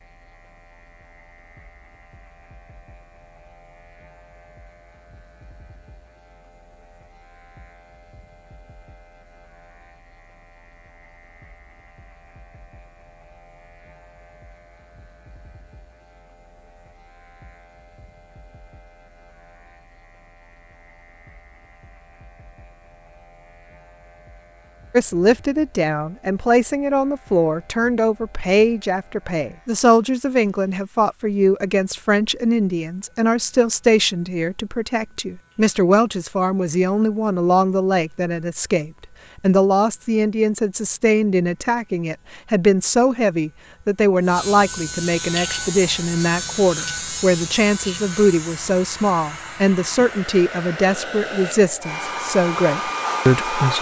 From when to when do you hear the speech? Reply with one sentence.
The speech can be heard from 24.9 to 53.7 s.